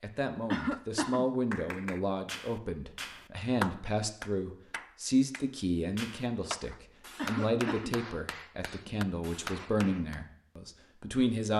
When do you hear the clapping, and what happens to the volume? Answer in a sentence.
The clapping can be heard from 1.5 to 10.2 s, getting louder then quieter.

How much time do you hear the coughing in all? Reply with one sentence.
The coughing can be heard for 2 seconds in total.